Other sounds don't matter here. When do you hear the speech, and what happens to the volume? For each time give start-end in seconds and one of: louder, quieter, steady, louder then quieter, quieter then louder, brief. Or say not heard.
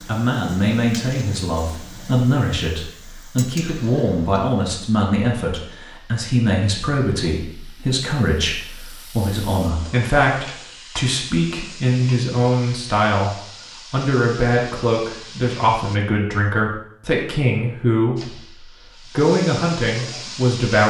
0.0-20.8 steady.